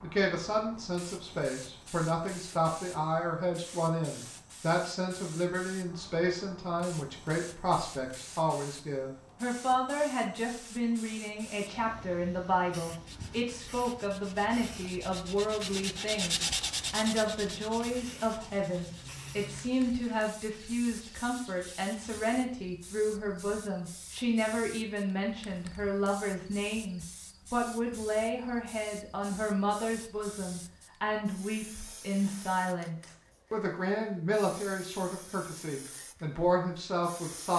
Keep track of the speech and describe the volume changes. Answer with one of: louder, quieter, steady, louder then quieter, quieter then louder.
steady.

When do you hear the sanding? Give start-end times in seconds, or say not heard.
13.1-22.2.